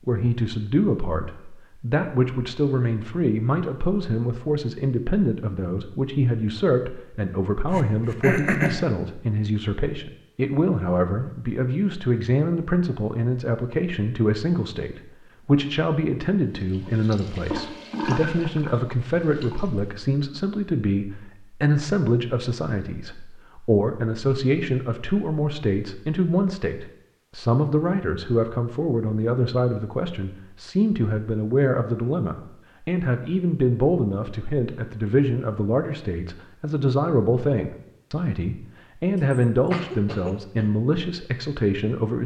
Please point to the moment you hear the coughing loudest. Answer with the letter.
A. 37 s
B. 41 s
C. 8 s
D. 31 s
C.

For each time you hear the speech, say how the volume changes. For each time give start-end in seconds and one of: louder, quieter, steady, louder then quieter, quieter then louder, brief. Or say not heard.
0.1-42.2 steady.